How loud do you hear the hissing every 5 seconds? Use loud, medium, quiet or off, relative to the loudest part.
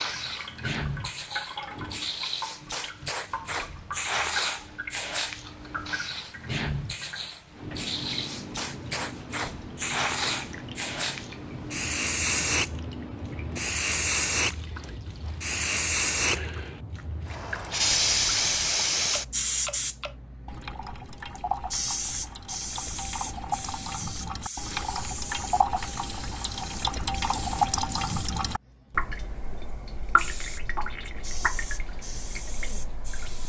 medium, medium, loud, loud, medium, quiet, quiet.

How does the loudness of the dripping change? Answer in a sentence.
The loudness of the dripping goes up.